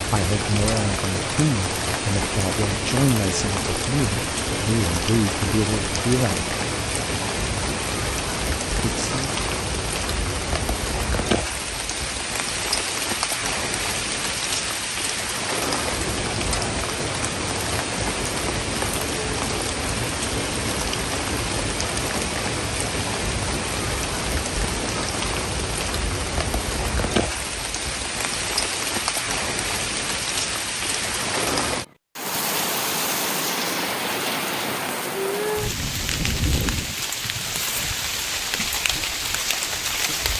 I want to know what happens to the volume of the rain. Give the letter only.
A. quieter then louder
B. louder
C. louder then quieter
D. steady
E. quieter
D.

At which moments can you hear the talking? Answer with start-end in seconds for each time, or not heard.
0.0-6.5, 8.8-9.3.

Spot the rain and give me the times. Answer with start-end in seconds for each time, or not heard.
0.0-40.3.